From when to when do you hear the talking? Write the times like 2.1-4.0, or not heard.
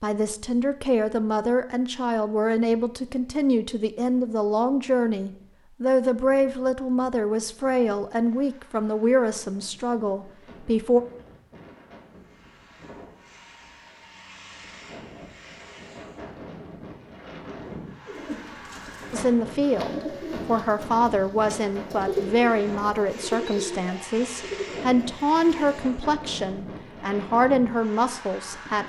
0.0-11.0, 19.1-28.8.